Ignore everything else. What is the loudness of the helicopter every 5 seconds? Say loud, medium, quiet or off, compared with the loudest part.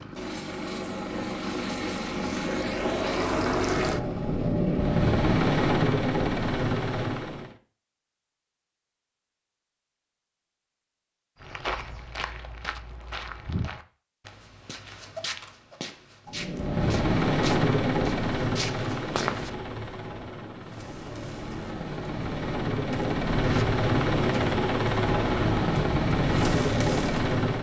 loud, loud, off, loud, loud, loud.